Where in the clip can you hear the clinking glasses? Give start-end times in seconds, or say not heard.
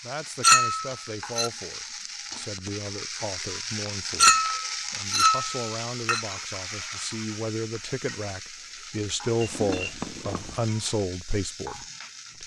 0.4-1.5, 4.2-6.2, 9.4-10.6.